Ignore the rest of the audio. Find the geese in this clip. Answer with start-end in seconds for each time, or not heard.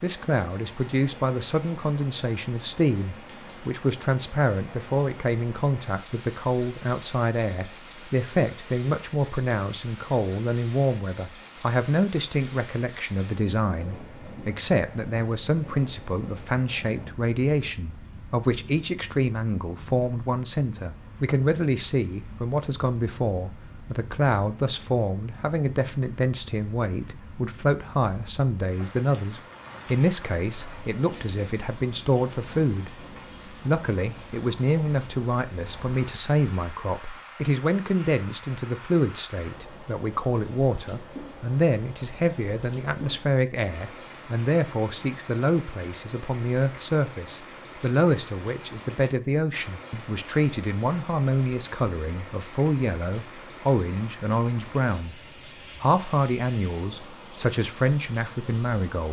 not heard.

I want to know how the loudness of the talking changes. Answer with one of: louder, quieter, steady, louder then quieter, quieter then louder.
steady.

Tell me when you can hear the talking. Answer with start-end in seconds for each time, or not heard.
0.0-55.1, 55.8-59.0.